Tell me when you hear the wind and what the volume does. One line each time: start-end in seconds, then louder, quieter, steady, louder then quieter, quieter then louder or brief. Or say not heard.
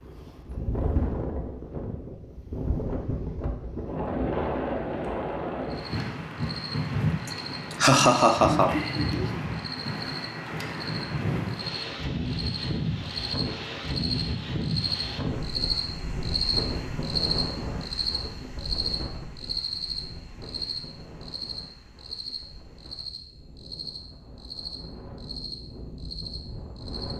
0.0-27.1 quieter.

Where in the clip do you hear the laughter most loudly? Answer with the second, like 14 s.
8 s.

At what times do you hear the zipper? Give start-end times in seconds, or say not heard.
not heard.